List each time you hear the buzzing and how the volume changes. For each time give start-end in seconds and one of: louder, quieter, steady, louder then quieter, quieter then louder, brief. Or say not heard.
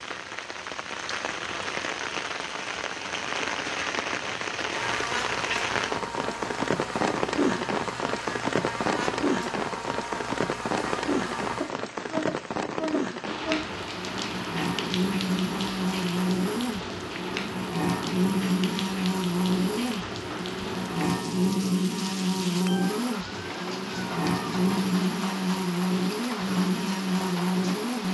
4.7-28.0 louder.